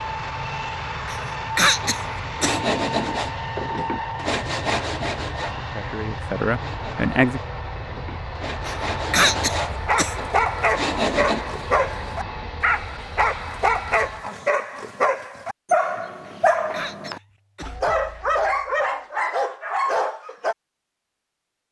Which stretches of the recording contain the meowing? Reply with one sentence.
You can't hear the meowing here.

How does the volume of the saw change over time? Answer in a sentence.
The volume of the saw goes down, then up.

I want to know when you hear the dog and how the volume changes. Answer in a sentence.
The dog can be heard from 9.7 to 20.6 s, at a steady volume.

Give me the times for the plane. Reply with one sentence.
The plane can be heard from 0.0 to 14.2 s.